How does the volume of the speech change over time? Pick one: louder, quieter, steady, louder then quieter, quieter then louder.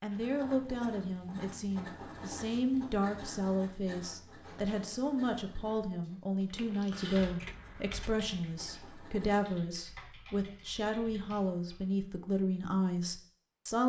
steady.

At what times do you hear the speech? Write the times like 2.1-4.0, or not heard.
0.0-13.8.